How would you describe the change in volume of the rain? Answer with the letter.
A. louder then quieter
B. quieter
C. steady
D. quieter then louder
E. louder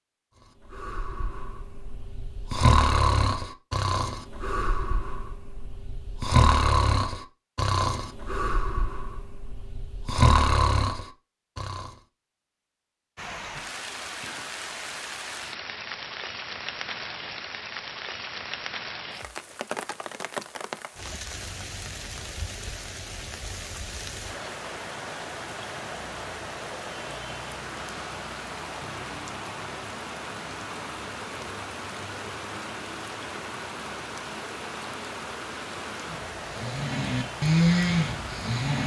C.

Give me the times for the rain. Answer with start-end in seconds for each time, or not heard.
13.2-38.8.